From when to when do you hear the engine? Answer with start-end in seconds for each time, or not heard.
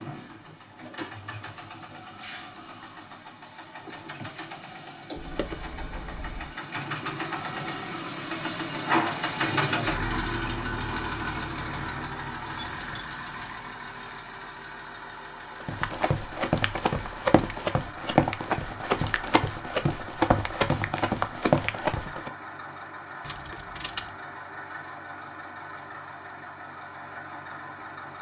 0.0-28.1.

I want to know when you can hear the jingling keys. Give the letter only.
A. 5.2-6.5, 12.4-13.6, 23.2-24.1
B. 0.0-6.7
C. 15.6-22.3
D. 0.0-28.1
A.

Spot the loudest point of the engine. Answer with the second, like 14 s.
9 s.